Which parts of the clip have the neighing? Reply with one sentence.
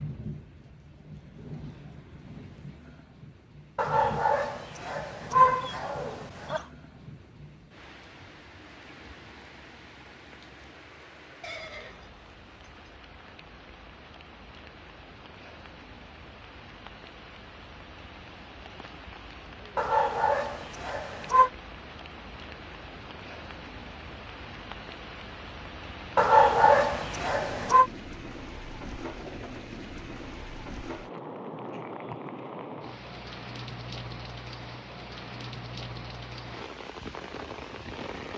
You can hear the neighing from 11.4 to 12.9 s.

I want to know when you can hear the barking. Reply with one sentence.
The barking can be heard from 3.8 to 6.6 s, from 19.8 to 21.5 s and from 26.1 to 27.9 s.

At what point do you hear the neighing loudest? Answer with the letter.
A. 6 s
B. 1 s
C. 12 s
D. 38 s
C.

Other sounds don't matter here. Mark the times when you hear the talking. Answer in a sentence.
You can't hear the talking here.